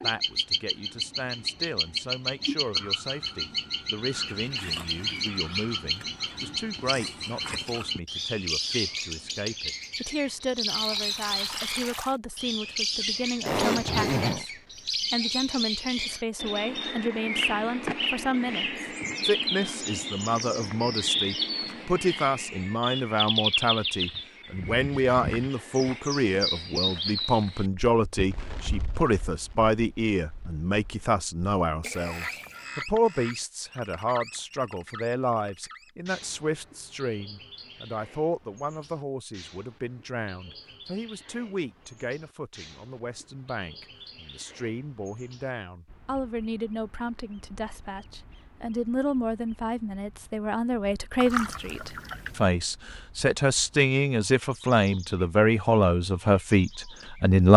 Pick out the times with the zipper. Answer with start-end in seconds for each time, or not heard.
13.4-14.4.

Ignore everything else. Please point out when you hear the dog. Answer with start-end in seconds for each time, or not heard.
not heard.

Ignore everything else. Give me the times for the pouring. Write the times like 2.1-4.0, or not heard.
10.7-12.2, 31.8-32.7, 51.2-52.5.